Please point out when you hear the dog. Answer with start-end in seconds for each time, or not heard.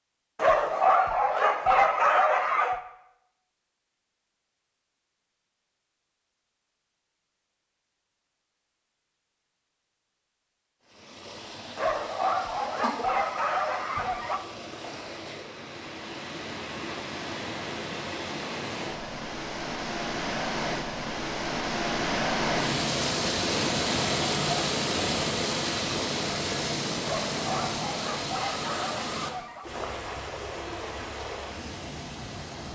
0.3-2.8, 11.8-14.4, 27.0-29.7.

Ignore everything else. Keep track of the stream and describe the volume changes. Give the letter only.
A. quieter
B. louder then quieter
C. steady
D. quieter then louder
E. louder
B.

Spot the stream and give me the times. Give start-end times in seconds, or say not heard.
10.8-32.6.